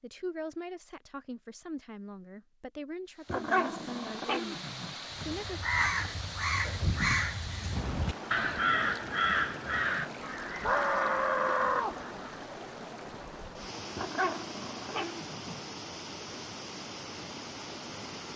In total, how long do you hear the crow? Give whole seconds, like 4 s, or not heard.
7 s.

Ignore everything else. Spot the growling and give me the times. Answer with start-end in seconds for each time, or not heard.
3.2-5.0, 13.9-15.6.